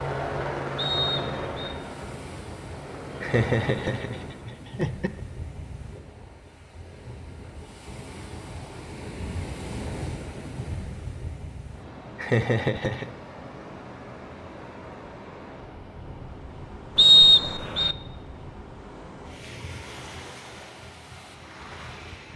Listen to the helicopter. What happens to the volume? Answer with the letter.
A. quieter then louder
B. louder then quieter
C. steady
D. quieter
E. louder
A.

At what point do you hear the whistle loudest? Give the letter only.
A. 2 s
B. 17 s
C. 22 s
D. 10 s
B.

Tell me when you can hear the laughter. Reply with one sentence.
You can hear the laughter from 3.2 to 5.2 s and from 12.2 to 13.1 s.